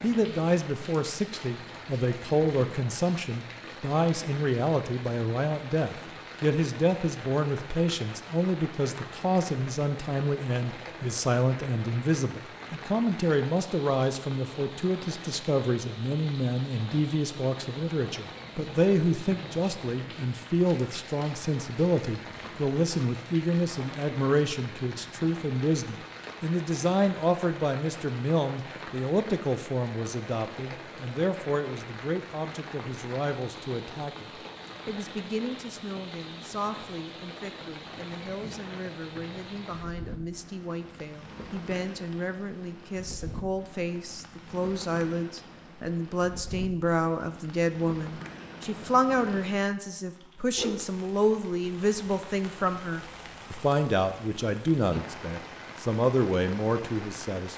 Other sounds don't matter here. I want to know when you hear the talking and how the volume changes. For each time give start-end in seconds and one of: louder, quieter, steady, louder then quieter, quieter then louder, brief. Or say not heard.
0.0-57.5 quieter then louder.